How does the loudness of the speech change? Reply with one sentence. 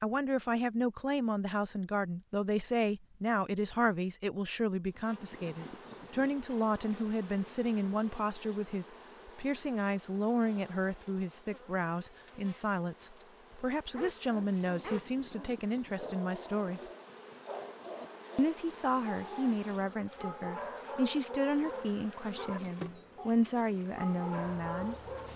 The loudness of the speech stays about the same.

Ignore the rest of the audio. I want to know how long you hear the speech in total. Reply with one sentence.
The speech can be heard for 24 seconds in total.